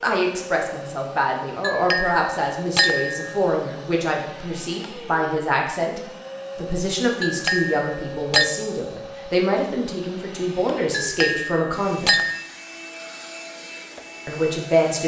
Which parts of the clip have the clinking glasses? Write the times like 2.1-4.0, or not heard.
1.6-3.4, 7.2-8.5, 10.9-12.3.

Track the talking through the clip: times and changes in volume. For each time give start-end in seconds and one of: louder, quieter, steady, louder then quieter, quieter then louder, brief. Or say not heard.
0.0-12.1 steady
14.2-15.0 brief.